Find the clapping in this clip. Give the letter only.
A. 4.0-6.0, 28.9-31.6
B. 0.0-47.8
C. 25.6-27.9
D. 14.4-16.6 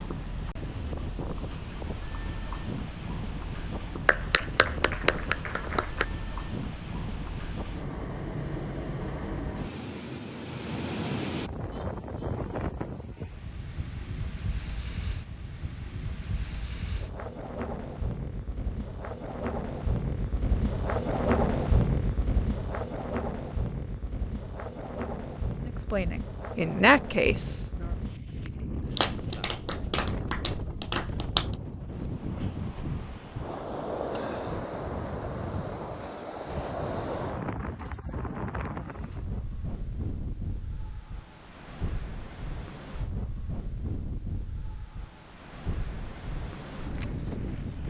A.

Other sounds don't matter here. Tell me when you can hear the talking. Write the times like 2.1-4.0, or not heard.
25.6-27.9.